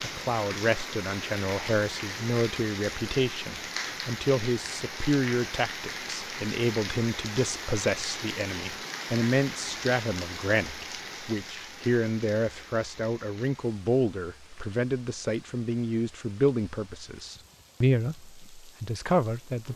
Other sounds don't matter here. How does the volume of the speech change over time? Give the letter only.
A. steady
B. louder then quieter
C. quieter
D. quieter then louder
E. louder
A.